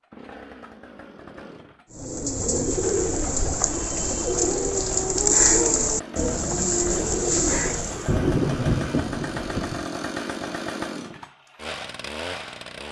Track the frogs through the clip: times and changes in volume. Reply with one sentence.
You can't hear the frogs here.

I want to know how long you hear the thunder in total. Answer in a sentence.
The thunder can be heard for 2 seconds in total.